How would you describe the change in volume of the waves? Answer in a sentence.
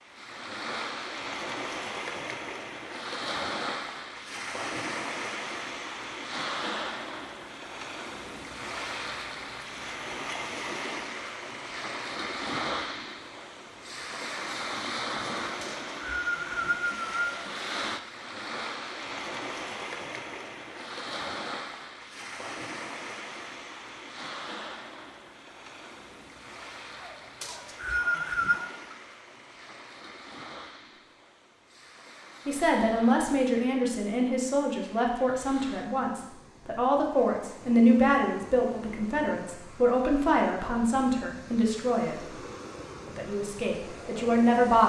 The volume of the waves goes down.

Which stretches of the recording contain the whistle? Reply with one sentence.
The whistle can be heard from 15.6 to 17.4 s and from 27.4 to 28.6 s.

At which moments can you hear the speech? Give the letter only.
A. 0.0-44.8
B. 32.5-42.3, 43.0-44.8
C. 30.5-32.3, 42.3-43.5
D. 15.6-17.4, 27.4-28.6
B.